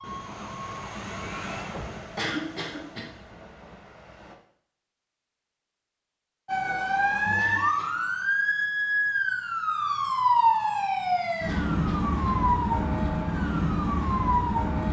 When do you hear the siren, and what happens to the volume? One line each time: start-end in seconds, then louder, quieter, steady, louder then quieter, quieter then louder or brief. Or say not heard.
0.0-1.4 brief
6.5-14.8 steady.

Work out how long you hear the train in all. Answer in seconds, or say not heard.
4 s.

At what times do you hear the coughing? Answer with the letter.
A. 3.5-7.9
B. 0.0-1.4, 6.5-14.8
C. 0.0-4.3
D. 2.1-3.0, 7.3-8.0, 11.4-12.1
D.